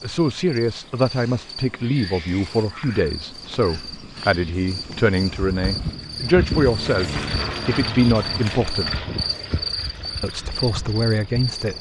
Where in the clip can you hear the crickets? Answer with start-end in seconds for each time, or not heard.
0.0-11.7.